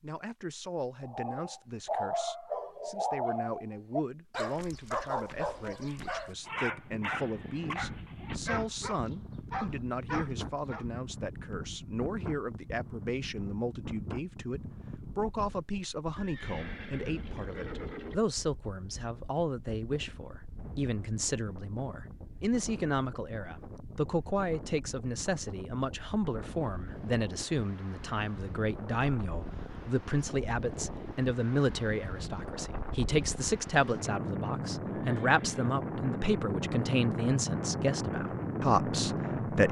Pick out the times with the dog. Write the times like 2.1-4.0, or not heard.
1.0-10.8.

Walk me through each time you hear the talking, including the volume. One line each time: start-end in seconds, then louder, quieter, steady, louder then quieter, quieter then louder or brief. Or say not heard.
0.0-39.6 louder.